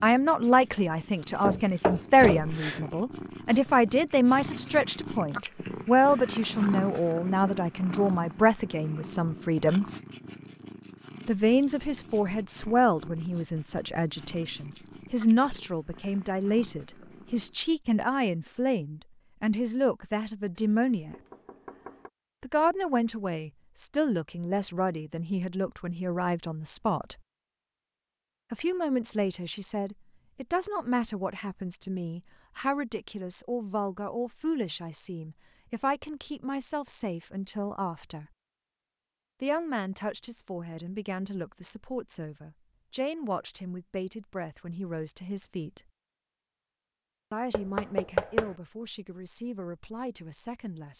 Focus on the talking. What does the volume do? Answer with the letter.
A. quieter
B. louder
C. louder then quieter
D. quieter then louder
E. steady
A.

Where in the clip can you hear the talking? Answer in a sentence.
The talking can be heard from 0.0 to 9.8 s, from 11.2 to 21.1 s, from 22.4 to 27.2 s, from 28.5 to 38.2 s, from 39.4 to 45.8 s and from 47.3 to 50.9 s.